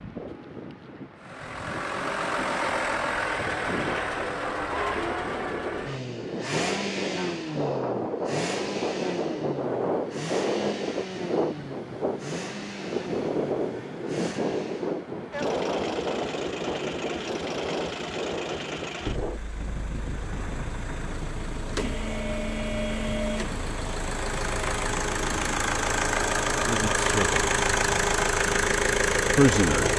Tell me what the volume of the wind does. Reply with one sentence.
The loudness of the wind goes up, then down.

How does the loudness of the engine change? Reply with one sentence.
The volume of the engine goes down, then up.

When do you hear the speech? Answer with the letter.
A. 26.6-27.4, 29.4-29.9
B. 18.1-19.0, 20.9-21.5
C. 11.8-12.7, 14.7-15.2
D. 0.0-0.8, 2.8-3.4
A.